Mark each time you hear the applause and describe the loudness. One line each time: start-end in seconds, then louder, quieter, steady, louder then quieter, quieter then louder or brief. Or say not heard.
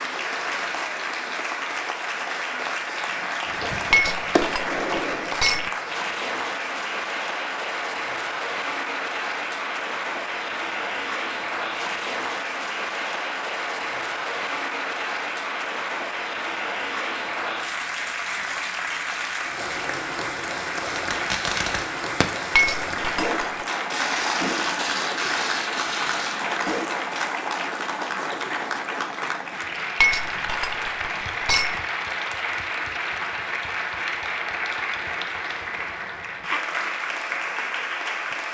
0.0-38.5 steady.